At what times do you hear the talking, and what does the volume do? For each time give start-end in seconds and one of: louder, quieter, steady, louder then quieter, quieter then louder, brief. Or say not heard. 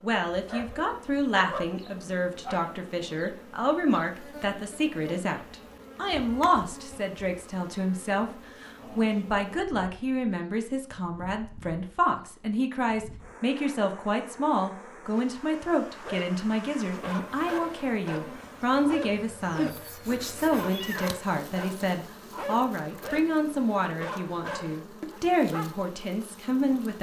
0.0-26.9 steady.